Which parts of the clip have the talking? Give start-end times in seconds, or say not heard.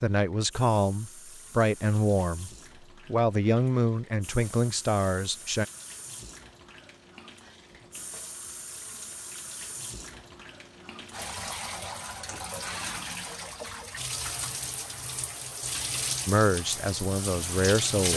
0.0-5.7, 16.2-18.1.